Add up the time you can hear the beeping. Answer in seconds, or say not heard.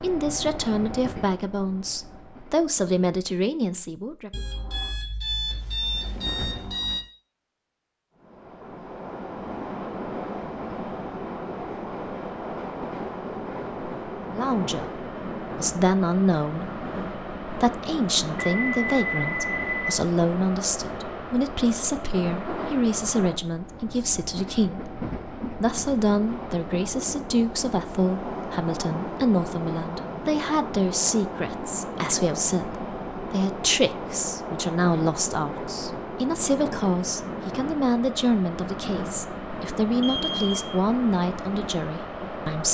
5 s.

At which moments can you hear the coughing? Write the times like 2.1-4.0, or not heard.
not heard.